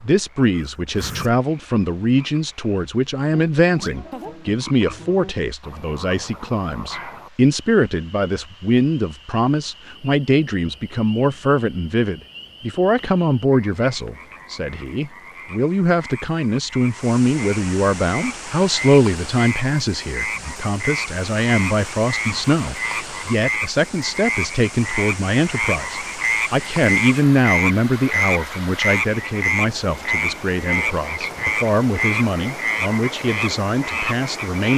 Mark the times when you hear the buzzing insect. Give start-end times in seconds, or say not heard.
not heard.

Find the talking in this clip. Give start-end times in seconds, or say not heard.
0.0-34.7.